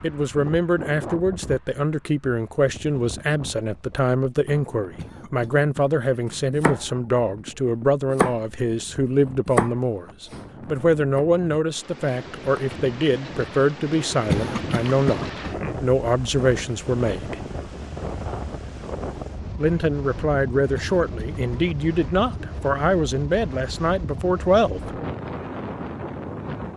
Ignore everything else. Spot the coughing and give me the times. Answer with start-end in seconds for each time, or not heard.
5.0-6.5, 14.2-15.8, 20.8-22.2.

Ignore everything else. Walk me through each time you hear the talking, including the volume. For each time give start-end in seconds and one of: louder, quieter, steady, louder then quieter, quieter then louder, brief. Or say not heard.
0.0-17.4 steady
19.6-24.8 steady.